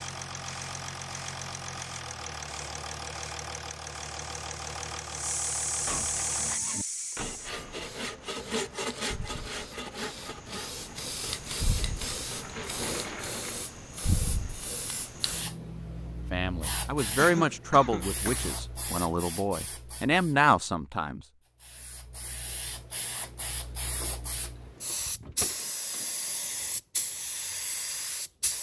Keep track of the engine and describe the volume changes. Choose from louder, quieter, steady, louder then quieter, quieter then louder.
steady.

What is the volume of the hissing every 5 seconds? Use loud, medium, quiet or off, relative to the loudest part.
off, loud, loud, loud, medium, loud.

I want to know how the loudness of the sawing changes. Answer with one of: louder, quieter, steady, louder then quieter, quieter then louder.
louder then quieter.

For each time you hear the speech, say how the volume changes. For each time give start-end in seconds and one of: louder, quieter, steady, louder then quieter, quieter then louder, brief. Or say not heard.
16.3-21.2 quieter then louder.